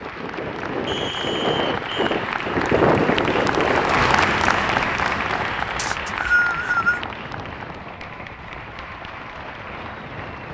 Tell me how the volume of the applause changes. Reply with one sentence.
The volume of the applause goes up, then down.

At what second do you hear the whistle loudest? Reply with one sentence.
The loudest moment of the whistle is at 6 seconds.